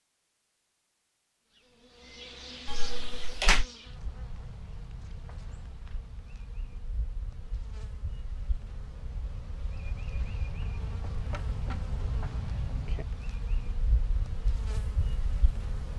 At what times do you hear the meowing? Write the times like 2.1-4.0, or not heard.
2.6-3.6.